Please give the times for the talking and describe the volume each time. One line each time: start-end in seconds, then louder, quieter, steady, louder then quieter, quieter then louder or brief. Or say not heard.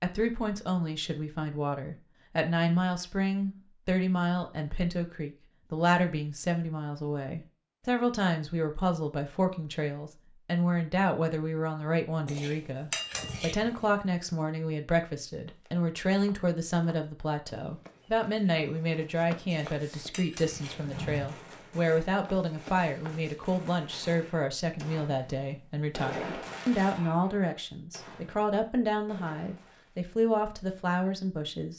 0.0-31.7 steady.